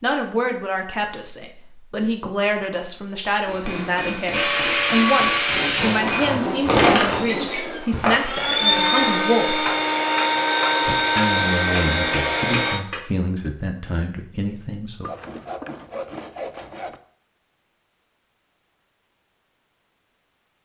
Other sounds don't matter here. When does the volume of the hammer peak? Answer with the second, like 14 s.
7 s.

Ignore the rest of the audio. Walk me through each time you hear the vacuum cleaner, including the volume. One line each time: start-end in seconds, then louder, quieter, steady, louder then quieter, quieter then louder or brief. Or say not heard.
4.3-12.8 quieter then louder.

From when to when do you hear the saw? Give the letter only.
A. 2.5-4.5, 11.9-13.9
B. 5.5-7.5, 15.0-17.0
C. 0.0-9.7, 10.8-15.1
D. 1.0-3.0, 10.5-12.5
B.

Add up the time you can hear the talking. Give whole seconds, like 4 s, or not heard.
14 s.